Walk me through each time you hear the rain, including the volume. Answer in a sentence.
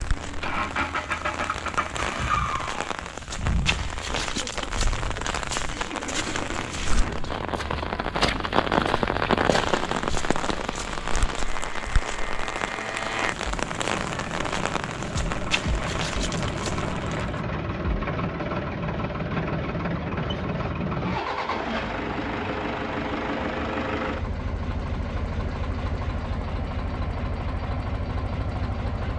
The rain can be heard from 0.0 to 17.4 s, getting louder then quieter.